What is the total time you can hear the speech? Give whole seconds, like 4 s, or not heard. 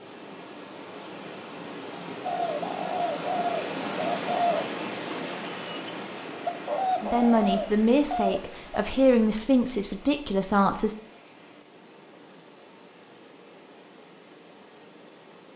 4 s.